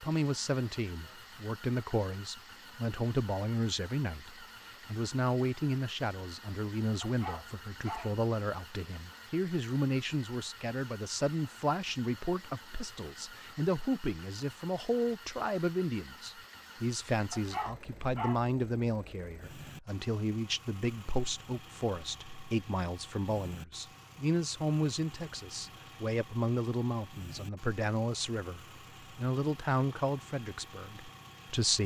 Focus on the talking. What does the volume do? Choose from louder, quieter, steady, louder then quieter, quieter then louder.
steady.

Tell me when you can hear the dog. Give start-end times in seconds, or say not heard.
7.0-8.2, 17.3-18.5.